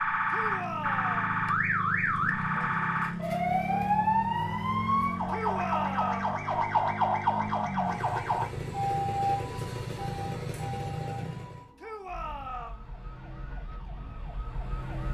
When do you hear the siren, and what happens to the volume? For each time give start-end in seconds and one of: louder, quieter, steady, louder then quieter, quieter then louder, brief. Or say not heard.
0.0-15.0 quieter.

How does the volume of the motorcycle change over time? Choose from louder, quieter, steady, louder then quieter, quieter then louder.
steady.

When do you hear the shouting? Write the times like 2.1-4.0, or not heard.
0.3-1.4, 5.3-6.3, 11.8-12.8.